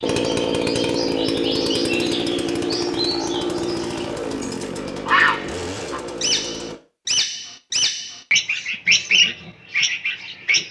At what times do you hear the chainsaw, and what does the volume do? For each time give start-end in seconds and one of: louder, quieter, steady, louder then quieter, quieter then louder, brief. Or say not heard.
0.0-6.8 quieter.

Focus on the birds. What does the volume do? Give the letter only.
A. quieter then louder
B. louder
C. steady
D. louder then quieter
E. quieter
B.